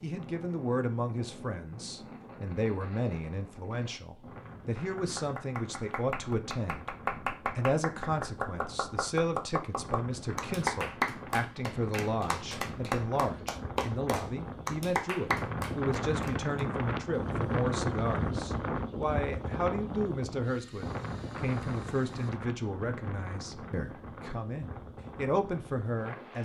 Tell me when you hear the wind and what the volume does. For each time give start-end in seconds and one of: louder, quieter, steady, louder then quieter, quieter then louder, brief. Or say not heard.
0.0-26.4 louder then quieter.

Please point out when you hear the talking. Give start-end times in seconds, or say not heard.
0.0-7.0, 7.5-26.4.